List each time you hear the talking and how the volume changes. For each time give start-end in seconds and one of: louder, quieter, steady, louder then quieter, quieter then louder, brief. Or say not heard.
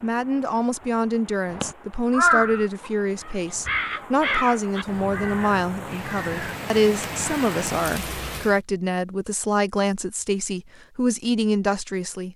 0.0-12.3 steady.